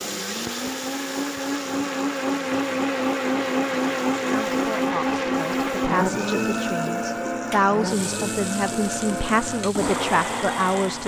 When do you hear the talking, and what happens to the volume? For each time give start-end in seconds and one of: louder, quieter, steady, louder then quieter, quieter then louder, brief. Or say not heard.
4.3-11.0 louder.